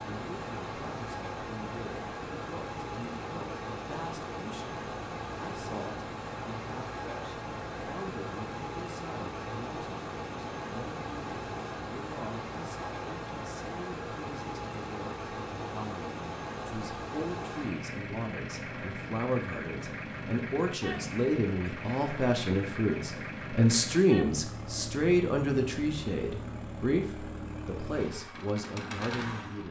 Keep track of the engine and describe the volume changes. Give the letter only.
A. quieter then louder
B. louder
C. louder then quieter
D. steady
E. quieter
D.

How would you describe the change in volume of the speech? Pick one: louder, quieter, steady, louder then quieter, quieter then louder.
louder.